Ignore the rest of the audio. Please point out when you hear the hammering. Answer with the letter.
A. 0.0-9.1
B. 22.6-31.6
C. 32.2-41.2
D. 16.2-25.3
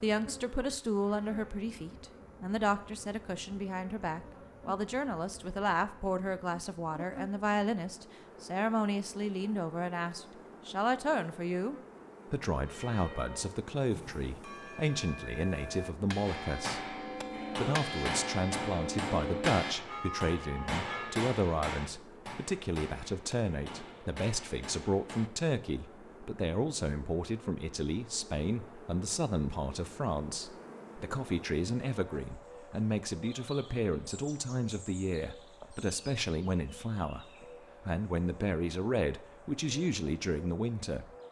D.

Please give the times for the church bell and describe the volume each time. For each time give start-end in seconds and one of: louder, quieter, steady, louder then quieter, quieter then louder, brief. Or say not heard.
12.7-21.2 louder.